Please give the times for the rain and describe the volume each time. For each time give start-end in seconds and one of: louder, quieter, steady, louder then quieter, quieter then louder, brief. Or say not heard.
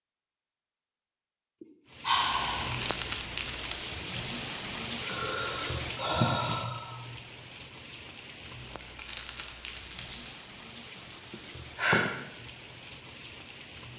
1.9-13.9 quieter.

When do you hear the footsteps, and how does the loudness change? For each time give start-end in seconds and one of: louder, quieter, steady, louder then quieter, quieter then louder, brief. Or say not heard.
not heard.